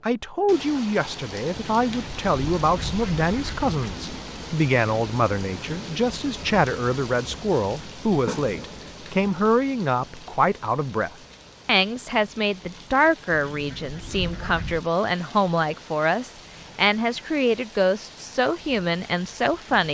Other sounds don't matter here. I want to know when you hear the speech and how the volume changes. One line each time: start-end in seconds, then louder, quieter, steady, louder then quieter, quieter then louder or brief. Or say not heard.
0.0-19.8 steady.